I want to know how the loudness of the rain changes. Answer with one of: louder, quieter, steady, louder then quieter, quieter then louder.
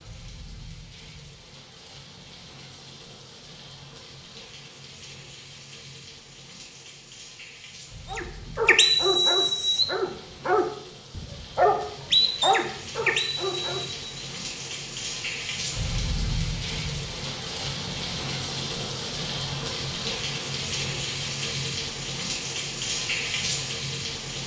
louder.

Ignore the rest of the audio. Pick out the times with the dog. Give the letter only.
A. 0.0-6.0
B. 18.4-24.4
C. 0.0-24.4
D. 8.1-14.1
D.